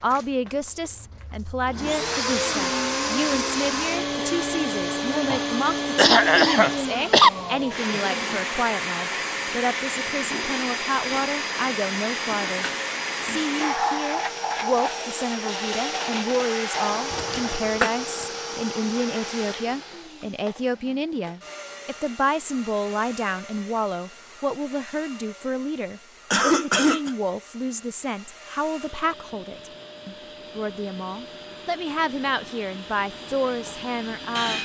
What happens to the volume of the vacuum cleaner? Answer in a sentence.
The loudness of the vacuum cleaner goes down.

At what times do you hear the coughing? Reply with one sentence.
You can hear the coughing from 5.3 to 7.3 s, from 17.1 to 17.9 s and from 26.3 to 27.1 s.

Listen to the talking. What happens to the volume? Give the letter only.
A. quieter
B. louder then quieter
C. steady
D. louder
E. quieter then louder
C.